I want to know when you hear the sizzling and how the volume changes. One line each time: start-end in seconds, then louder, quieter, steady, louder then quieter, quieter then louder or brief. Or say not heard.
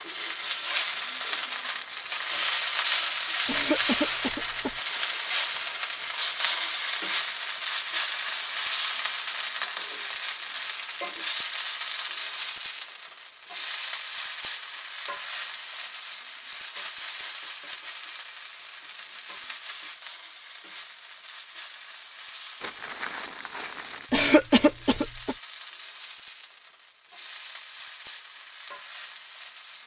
0.0-29.8 quieter.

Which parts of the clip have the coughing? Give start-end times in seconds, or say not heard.
3.5-4.8, 24.1-25.4.